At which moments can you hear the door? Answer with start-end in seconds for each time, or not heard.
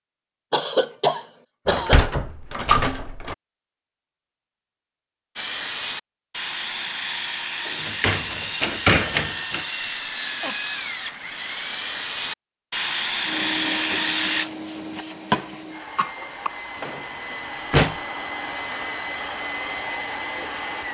1.6-3.4, 7.7-9.7, 17.3-18.0.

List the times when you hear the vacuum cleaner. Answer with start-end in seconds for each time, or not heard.
13.2-20.8.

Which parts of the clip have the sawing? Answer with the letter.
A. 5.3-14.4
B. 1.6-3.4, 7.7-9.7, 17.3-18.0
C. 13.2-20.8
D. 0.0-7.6
A.